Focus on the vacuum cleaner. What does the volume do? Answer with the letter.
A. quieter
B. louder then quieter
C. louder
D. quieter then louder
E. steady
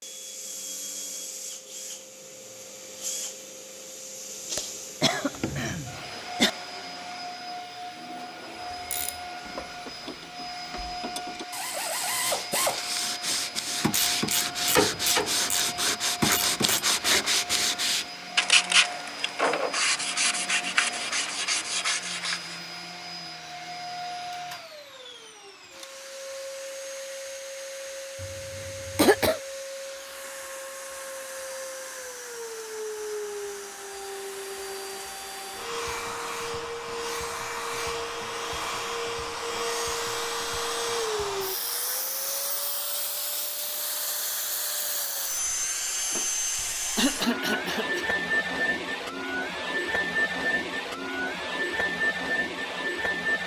C.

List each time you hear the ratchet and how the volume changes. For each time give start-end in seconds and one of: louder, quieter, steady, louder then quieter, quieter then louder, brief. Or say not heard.
8.8-16.9 louder.